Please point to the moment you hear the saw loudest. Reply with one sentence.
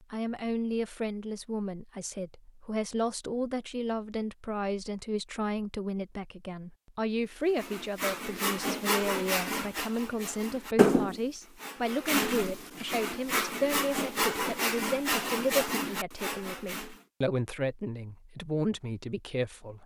The loudest moment of the saw is at 11 seconds.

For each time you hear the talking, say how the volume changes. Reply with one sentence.
The talking can be heard from 0.0 to 19.8 s, at a steady volume.